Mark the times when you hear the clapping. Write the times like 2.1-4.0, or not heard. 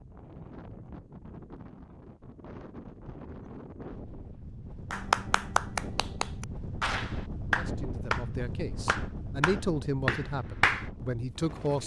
4.9-10.9.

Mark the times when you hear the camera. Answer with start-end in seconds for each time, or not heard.
not heard.